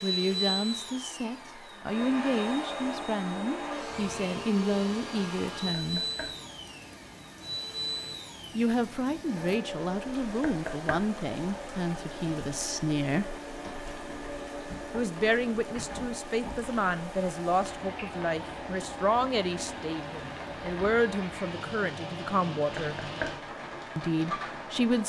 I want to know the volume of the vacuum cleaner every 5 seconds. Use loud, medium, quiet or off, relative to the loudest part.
loud, loud, medium, medium, medium.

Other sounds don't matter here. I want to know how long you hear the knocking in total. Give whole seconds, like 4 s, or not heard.
2 s.